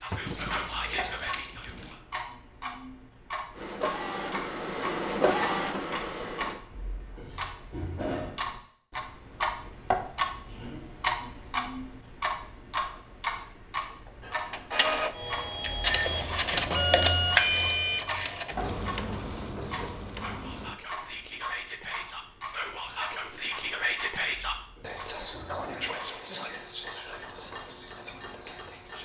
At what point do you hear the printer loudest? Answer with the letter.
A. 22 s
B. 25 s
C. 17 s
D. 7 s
C.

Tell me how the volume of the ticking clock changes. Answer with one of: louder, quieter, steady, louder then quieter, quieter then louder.
louder then quieter.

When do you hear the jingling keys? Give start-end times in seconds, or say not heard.
0.1-1.9.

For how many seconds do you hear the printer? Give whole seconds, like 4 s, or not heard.
10 s.